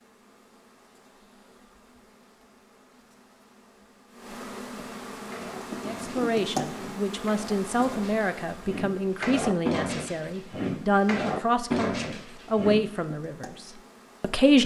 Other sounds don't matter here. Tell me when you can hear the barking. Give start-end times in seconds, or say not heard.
5.3-12.8.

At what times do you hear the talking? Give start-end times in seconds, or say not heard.
5.8-13.6, 14.2-14.6.